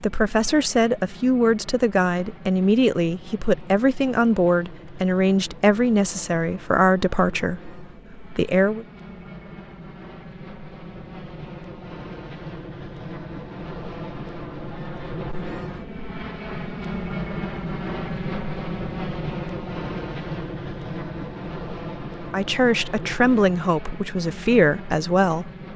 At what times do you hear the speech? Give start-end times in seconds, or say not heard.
0.0-8.8, 22.3-25.5.